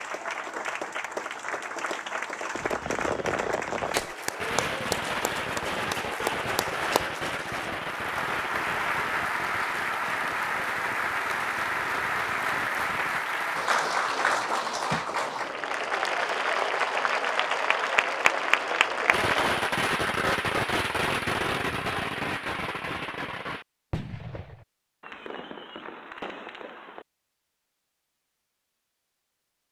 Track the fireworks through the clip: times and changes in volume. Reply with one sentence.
You can hear the fireworks from 2.5 to 13.2 s, getting quieter; and from 19.1 to 27.1 s, getting quieter.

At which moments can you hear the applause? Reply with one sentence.
You can hear the applause from 0.0 to 19.7 s.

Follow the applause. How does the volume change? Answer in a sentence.
The volume of the applause goes up.